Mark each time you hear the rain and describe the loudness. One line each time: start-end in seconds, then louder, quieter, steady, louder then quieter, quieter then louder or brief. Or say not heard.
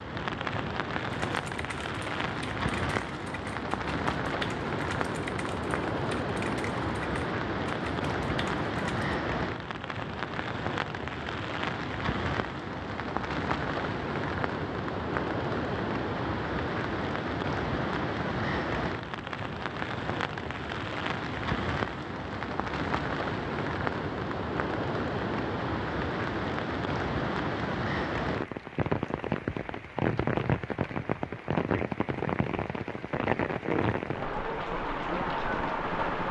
0.0-36.2 steady.